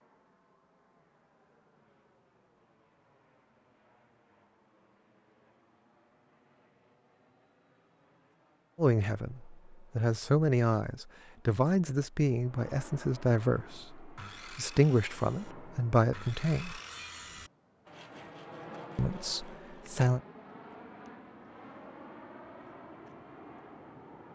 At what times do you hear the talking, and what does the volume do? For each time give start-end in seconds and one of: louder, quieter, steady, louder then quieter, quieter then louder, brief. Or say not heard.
8.8-16.8 steady
18.9-20.2 brief.